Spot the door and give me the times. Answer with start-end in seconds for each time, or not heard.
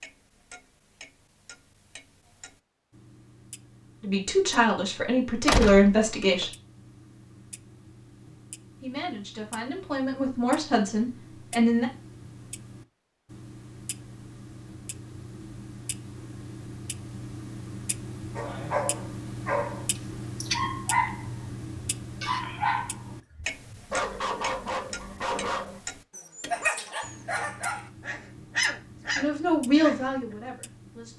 5.5-6.5.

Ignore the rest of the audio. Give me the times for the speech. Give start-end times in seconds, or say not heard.
4.0-6.5, 8.8-11.9, 29.1-31.1.